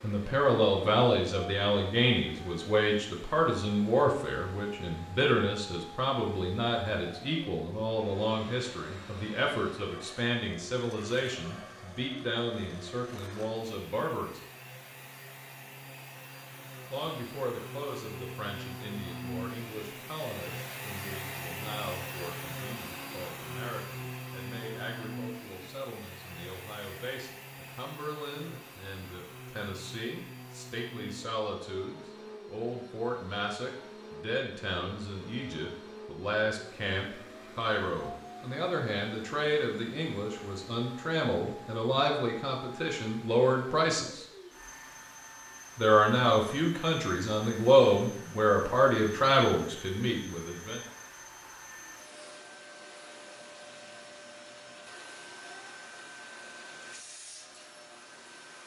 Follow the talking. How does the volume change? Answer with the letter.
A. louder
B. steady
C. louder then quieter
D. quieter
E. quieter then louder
E.